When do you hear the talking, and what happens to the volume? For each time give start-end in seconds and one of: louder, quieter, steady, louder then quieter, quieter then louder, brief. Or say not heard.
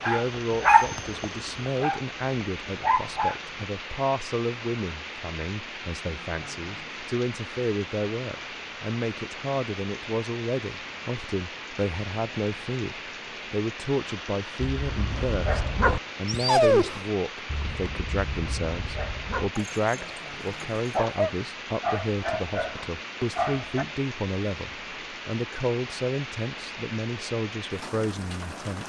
0.1-28.8 steady.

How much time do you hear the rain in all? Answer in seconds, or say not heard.
29 s.